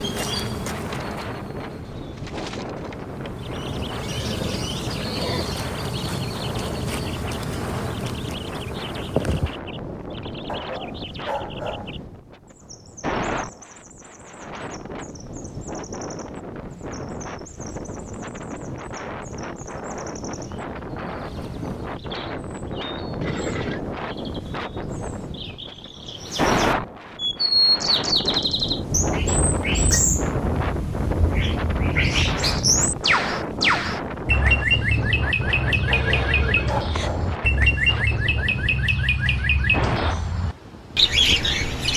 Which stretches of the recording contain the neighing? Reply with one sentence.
The neighing can be heard from 4.0 to 5.5 s, from 23.2 to 23.8 s and from 35.9 to 37.1 s.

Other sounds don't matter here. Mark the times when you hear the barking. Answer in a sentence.
The barking can be heard from 10.4 to 11.9 s and from 35.9 to 37.4 s.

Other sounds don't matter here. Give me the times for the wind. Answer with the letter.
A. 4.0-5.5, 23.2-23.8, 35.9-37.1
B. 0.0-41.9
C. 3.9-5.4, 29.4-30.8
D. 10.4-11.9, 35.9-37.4
B.